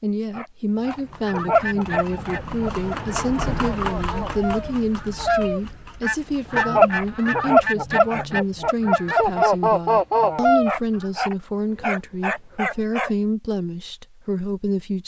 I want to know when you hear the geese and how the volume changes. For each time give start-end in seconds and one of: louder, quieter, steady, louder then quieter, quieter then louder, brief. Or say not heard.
1.2-10.8 louder.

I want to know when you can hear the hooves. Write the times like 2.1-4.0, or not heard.
0.7-7.2.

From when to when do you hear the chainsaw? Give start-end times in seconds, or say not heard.
not heard.